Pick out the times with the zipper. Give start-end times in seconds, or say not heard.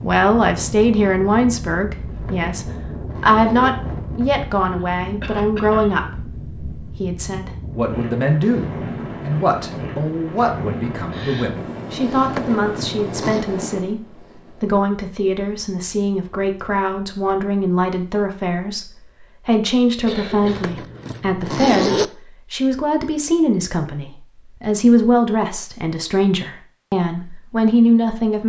2.0-3.8, 12.2-13.4, 20.4-22.1.